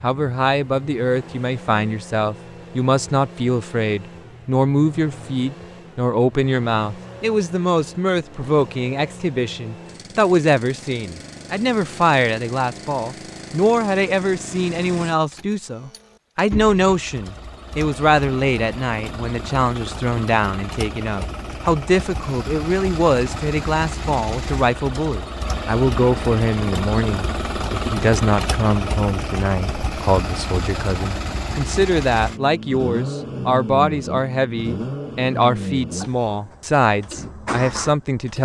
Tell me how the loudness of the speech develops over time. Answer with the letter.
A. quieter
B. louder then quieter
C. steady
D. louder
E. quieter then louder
C.